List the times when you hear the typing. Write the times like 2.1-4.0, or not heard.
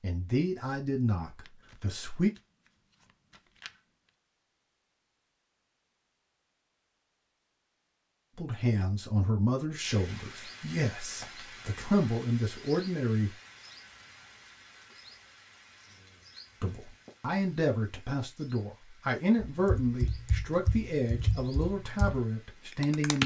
19.4-23.2.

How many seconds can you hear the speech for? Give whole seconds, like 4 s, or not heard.
14 s.